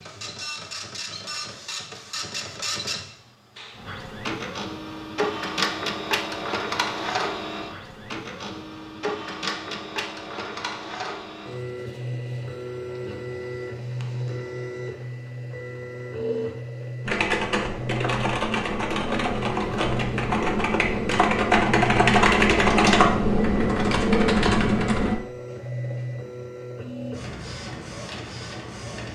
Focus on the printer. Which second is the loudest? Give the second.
6 s.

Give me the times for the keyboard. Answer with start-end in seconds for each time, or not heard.
17.1-25.1.